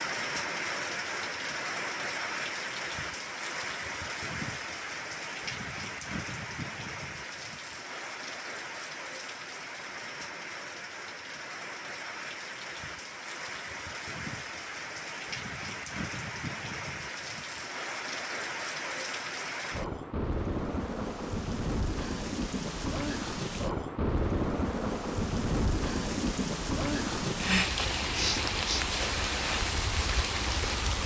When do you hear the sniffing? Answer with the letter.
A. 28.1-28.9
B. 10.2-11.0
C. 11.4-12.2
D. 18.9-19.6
A.